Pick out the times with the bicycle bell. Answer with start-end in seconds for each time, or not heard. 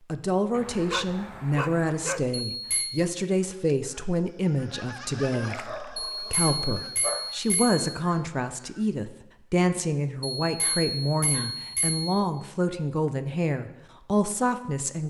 2.5-3.0, 6.2-7.9, 10.4-12.2.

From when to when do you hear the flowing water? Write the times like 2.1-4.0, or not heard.
not heard.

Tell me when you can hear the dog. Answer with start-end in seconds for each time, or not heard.
0.5-2.4, 5.5-7.3, 10.6-11.7.